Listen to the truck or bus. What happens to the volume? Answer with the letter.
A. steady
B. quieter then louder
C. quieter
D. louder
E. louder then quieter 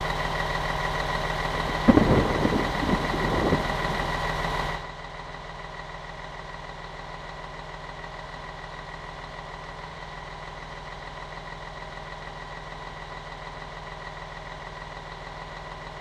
C.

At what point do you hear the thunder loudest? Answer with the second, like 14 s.
2 s.